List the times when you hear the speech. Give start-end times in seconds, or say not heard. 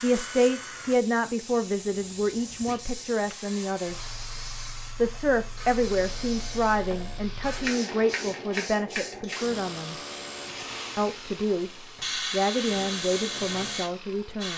0.0-4.0, 5.0-9.9, 10.9-14.5.